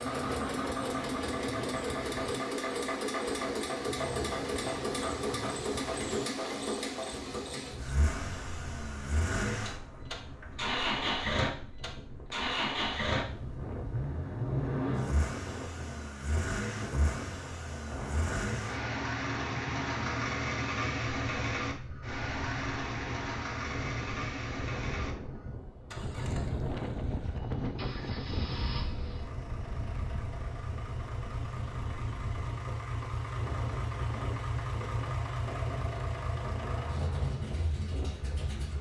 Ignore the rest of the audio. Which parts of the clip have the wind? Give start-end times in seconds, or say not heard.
0.0-38.7.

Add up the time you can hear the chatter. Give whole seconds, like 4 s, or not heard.
not heard.